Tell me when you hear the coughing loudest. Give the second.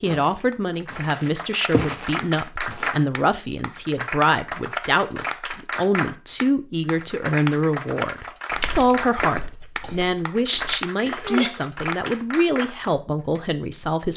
11 s.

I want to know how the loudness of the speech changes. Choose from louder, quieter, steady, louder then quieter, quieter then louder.
steady.